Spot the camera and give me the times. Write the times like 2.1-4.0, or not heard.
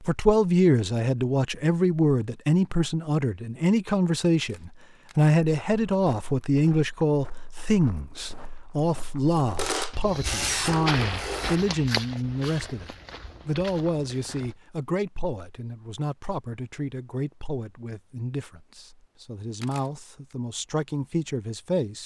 4.4-5.3, 9.6-11.6, 19.6-20.4.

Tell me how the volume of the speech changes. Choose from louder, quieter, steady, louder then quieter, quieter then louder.
quieter.